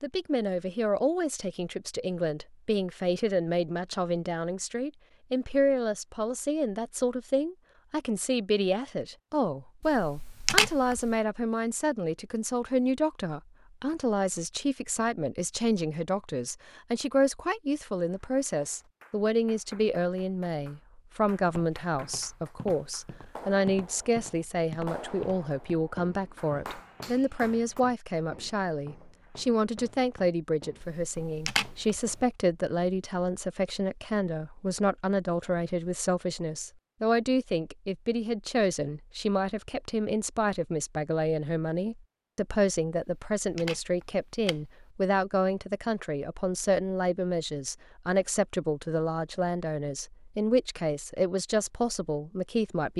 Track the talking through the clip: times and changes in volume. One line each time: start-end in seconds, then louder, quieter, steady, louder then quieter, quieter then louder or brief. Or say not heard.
0.0-52.9 steady.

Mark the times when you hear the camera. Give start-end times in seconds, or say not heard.
9.8-11.2, 30.8-32.2, 43.4-44.6.